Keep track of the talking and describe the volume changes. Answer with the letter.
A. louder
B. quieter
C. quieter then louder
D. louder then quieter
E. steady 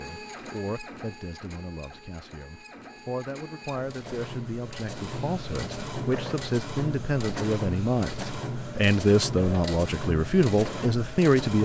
A.